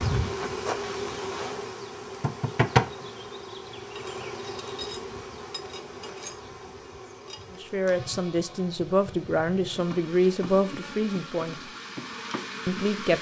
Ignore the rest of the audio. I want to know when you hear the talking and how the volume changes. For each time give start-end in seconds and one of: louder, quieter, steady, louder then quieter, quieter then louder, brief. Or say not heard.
7.6-11.7 louder then quieter
12.7-13.1 brief.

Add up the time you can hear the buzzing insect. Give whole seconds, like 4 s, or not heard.
13 s.